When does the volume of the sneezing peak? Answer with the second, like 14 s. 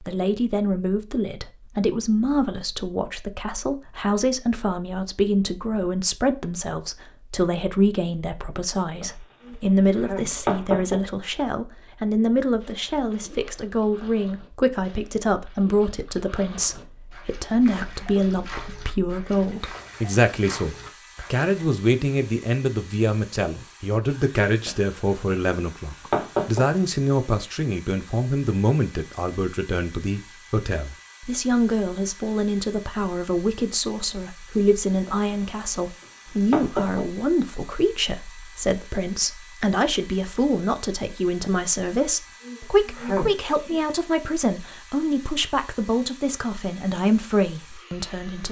43 s.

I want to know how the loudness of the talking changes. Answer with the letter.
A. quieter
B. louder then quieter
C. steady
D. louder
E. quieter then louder
C.